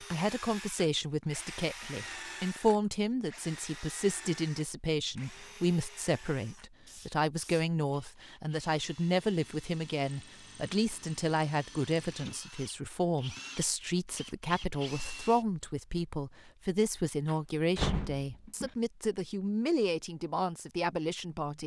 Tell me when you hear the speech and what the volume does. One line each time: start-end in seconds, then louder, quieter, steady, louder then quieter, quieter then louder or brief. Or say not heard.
0.0-21.6 steady.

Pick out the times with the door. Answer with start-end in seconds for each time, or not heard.
17.2-18.7.